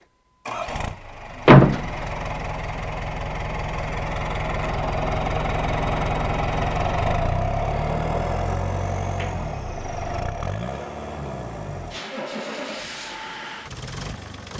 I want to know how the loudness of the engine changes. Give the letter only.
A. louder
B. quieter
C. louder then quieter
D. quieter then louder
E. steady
C.